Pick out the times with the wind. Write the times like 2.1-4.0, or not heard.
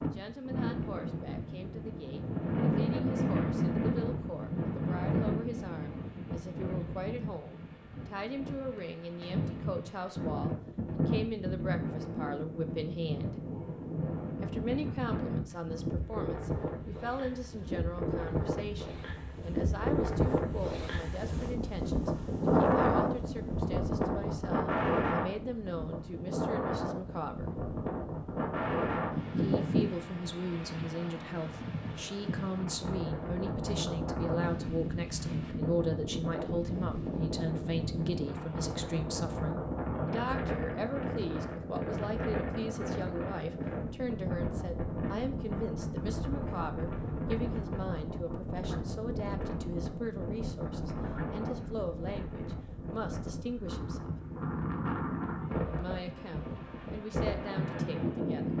0.0-58.5.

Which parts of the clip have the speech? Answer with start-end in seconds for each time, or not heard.
0.0-13.3, 14.4-27.5, 29.3-54.1, 55.8-58.5.